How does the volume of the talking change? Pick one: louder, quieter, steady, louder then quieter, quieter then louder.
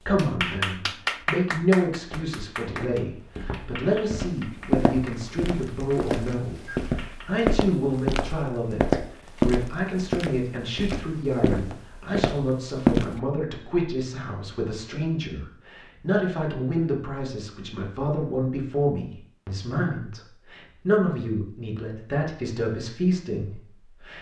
steady.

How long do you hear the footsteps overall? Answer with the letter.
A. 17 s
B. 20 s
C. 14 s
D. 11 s
D.